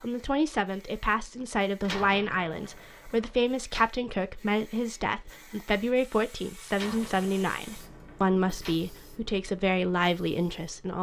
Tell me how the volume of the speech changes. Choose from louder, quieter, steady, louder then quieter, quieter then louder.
steady.